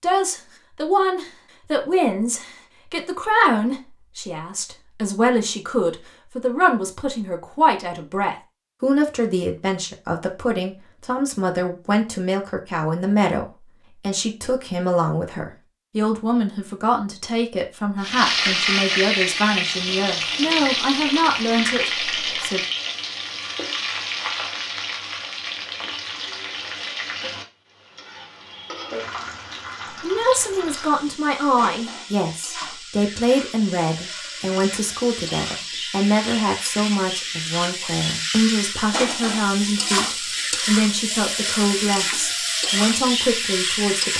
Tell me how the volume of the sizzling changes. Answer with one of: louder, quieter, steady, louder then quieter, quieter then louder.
quieter then louder.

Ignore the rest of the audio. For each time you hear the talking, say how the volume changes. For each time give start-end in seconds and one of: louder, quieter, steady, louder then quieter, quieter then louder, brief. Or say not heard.
0.0-22.6 steady
30.0-44.1 steady.